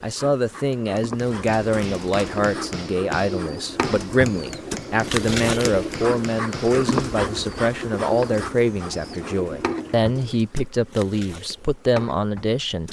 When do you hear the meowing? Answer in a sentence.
The meowing can't be heard in this clip.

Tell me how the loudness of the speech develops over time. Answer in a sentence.
The loudness of the speech stays about the same.